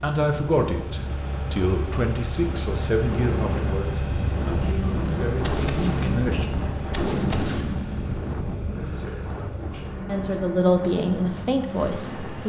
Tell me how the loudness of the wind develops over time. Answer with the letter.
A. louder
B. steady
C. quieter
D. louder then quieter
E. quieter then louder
D.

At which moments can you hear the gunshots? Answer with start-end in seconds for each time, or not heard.
5.0-8.2.